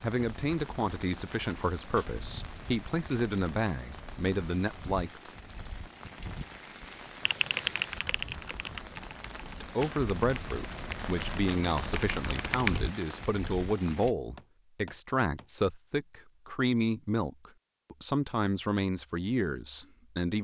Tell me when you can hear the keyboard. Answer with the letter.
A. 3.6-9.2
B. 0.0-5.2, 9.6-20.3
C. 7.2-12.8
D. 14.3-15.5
C.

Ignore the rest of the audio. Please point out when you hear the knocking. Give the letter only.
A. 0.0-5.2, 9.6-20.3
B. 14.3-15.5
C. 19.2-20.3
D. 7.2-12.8
B.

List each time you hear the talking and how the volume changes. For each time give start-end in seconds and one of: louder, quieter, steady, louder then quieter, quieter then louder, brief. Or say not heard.
0.0-5.2 steady
9.6-20.3 steady.